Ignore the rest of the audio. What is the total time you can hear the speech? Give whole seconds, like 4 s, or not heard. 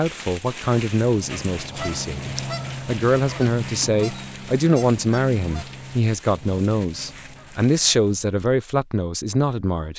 10 s.